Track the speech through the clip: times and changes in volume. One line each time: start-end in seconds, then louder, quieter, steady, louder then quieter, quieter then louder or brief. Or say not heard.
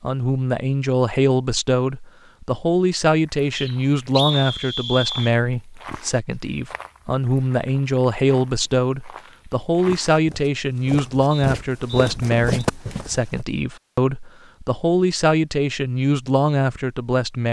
0.0-17.4 steady.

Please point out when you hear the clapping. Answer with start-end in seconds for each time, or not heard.
not heard.